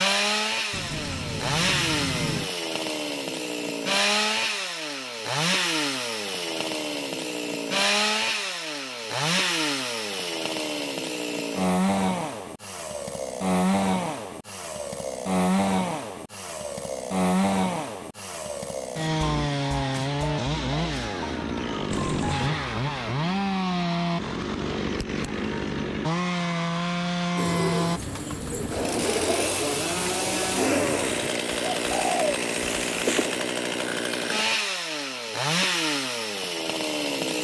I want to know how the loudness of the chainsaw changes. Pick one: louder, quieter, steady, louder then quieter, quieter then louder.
steady.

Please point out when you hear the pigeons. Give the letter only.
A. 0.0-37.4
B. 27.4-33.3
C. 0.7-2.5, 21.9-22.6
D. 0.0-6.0
B.